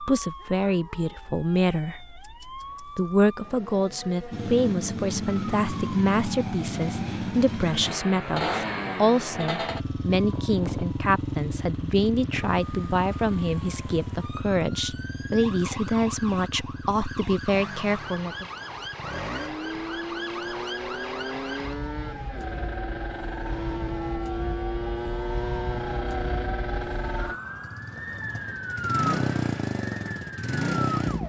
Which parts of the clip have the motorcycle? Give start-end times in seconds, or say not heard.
4.3-31.2.